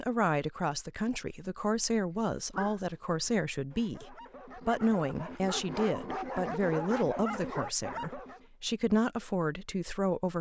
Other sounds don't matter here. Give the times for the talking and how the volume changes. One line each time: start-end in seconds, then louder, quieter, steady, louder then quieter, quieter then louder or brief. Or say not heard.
0.0-10.3 steady.